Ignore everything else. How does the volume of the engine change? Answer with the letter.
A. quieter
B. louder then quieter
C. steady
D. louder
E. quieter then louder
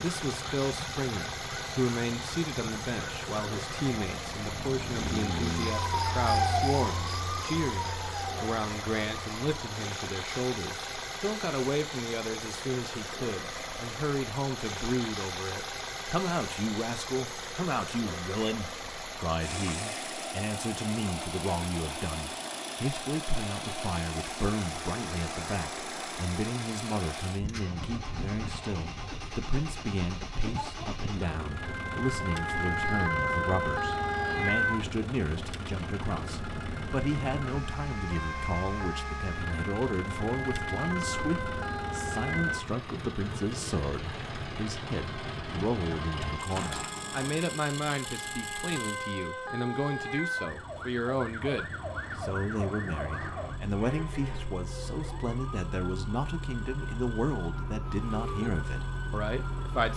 A.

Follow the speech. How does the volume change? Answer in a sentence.
The volume of the speech stays about the same.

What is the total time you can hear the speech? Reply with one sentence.
The speech can be heard for 60 seconds in total.